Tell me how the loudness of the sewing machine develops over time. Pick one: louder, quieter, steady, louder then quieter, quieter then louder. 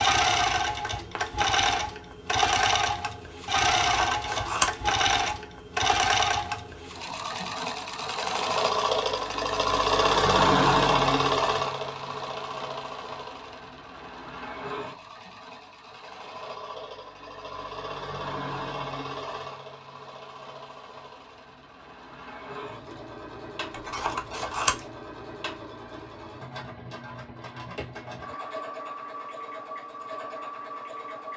quieter.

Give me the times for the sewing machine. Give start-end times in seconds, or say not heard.
0.0-31.3.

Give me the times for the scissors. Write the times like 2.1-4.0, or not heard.
3.9-5.3, 23.7-24.9.